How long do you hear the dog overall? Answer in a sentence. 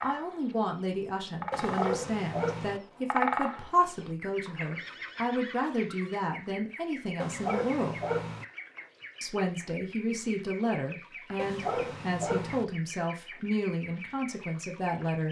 The dog can be heard for 4 seconds in total.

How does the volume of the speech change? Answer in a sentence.
The volume of the speech stays about the same.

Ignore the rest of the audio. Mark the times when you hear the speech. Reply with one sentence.
The speech can be heard from 0.0 to 8.0 s and from 9.2 to 15.2 s.